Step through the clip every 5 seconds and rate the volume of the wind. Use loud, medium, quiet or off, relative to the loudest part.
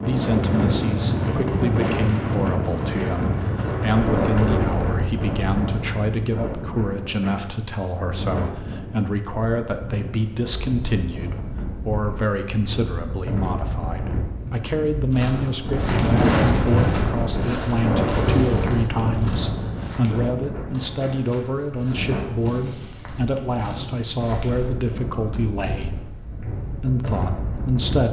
loud, medium, medium, loud, medium, medium.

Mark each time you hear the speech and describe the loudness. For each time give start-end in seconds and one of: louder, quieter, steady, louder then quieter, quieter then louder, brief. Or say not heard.
0.0-25.9 steady
26.6-28.0 brief.